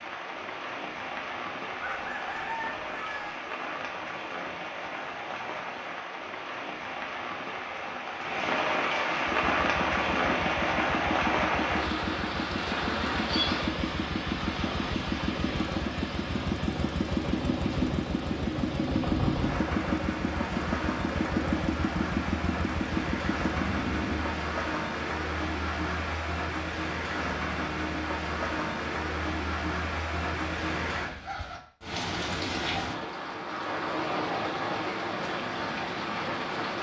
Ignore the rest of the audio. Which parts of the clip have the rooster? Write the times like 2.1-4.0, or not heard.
1.8-3.4.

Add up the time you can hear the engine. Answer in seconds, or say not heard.
15 s.